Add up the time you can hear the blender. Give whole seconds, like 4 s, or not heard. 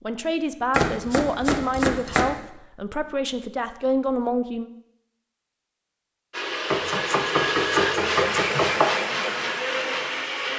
4 s.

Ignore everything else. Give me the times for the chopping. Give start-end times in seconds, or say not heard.
0.7-2.4, 6.7-8.9.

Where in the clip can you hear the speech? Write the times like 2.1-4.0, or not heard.
0.0-4.7.